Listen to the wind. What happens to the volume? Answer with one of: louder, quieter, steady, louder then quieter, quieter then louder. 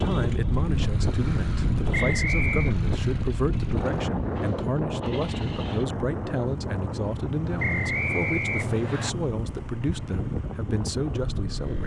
quieter.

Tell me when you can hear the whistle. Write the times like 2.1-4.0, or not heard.
1.9-2.8, 7.5-9.1.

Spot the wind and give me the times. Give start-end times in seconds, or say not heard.
0.0-11.8.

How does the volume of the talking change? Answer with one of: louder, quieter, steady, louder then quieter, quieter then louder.
steady.